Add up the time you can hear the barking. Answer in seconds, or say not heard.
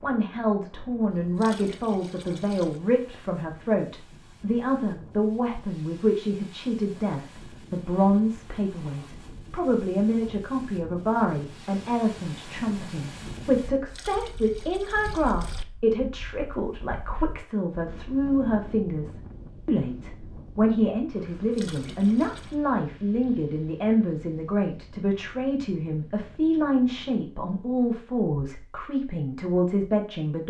not heard.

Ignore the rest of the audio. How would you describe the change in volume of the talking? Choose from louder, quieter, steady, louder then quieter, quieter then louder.
steady.